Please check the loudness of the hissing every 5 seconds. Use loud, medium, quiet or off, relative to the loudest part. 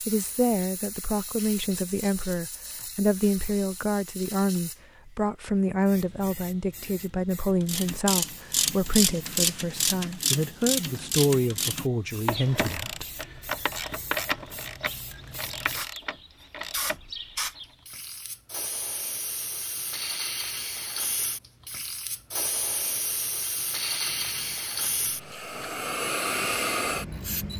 quiet, quiet, quiet, medium, loud, loud.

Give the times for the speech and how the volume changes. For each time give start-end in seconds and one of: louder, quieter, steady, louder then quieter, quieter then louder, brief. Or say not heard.
0.1-13.1 steady.